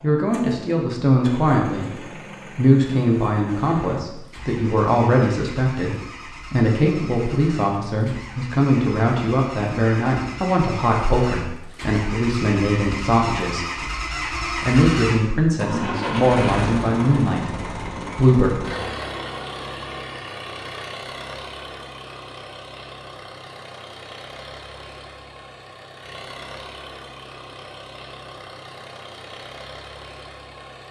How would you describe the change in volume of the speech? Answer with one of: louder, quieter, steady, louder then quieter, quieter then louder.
steady.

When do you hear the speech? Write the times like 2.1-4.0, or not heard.
0.0-13.8, 14.4-18.5.